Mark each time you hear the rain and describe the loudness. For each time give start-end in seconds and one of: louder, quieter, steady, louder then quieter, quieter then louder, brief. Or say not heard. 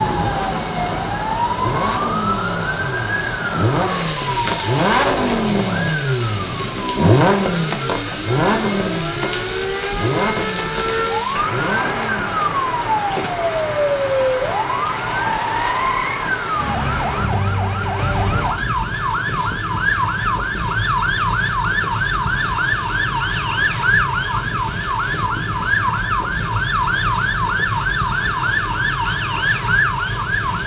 0.0-30.6 steady.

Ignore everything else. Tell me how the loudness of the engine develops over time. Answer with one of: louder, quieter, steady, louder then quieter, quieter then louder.
louder then quieter.